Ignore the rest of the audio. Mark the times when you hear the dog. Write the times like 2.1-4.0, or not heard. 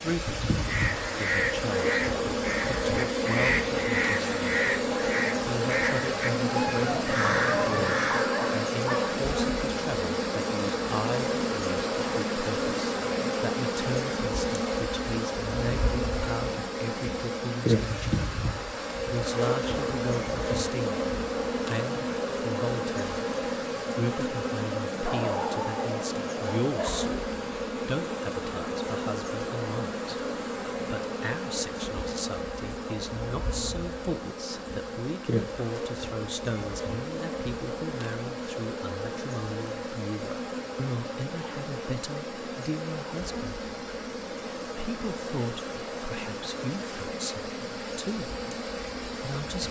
6.5-9.2, 25.1-27.1.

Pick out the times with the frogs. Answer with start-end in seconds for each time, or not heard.
not heard.